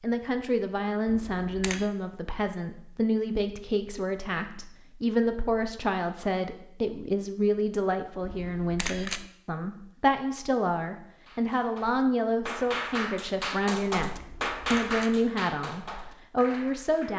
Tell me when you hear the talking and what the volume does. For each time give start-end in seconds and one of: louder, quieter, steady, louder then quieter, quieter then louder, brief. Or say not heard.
0.0-17.1 steady.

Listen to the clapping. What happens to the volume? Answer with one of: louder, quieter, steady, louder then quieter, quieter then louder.
louder then quieter.